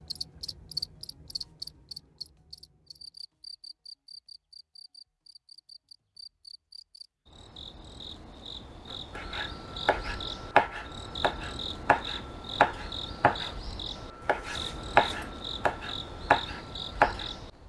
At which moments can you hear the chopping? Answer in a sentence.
The chopping can be heard from 9.2 to 13.6 s and from 14.2 to 17.3 s.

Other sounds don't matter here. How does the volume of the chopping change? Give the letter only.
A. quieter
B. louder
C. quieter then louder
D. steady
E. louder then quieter
B.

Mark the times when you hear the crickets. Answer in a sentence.
You can hear the crickets from 0.0 to 17.6 s.